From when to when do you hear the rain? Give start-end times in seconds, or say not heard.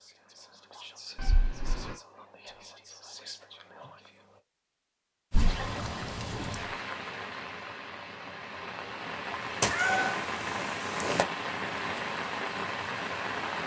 5.3-13.6.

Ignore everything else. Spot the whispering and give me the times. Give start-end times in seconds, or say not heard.
0.0-4.4.